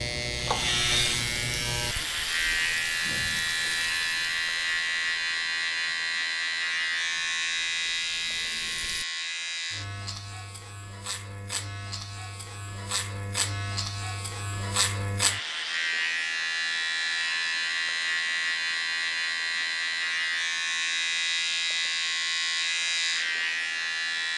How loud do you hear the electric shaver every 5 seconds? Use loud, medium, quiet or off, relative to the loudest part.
loud, loud, medium, loud, loud.